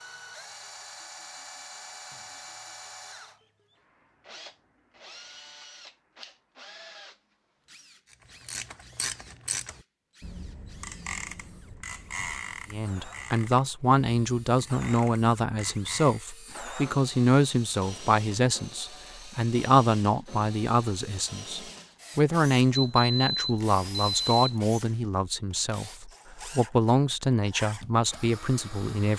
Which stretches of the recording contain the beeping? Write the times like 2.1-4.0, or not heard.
22.7-24.6.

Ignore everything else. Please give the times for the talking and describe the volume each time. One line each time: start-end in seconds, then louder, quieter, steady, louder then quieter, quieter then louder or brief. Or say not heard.
12.7-29.1 steady.